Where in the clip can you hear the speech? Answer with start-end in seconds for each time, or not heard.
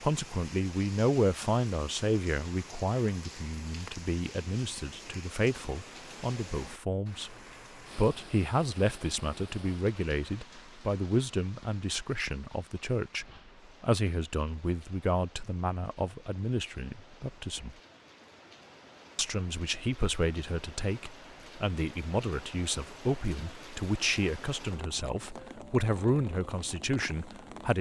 0.0-7.3, 8.0-17.8, 19.1-27.7.